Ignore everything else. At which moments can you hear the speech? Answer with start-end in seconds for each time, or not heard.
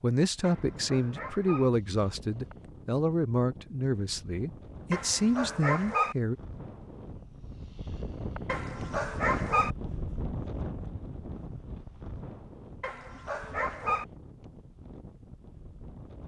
0.0-6.3.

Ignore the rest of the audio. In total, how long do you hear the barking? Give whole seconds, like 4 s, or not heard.
5 s.